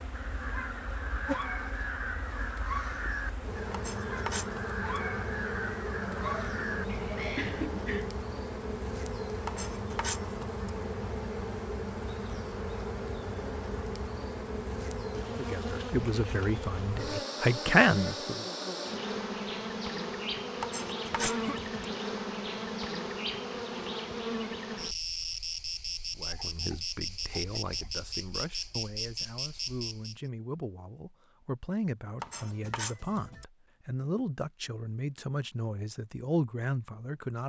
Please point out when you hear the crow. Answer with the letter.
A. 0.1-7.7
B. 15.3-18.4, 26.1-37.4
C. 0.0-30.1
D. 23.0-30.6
A.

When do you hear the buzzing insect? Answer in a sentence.
You can hear the buzzing insect from 0.0 to 30.1 s.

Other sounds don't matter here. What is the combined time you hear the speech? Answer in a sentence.
The speech can be heard for 14 seconds in total.